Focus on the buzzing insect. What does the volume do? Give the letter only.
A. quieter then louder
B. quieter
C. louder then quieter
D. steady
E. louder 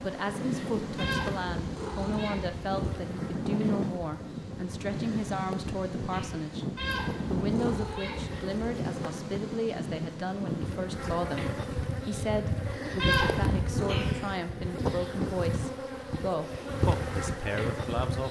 E.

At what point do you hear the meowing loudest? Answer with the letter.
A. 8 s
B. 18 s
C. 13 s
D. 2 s
C.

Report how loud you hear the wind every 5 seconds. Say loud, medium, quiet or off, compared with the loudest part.
loud, loud, loud, off.